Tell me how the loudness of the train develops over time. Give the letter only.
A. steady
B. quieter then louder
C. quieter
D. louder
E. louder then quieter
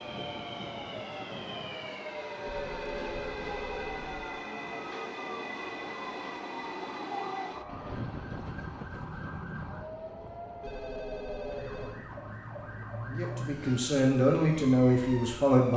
C.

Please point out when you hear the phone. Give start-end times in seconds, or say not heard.
2.5-4.2, 10.6-12.0.